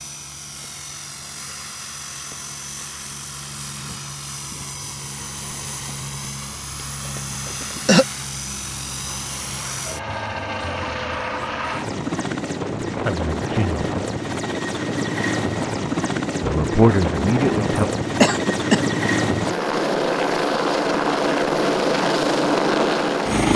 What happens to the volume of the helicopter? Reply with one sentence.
The volume of the helicopter goes up.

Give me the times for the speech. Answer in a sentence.
The speech can be heard from 13.1 to 13.8 s and from 16.4 to 17.9 s.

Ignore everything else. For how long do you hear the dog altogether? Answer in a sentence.
You can't hear the dog here.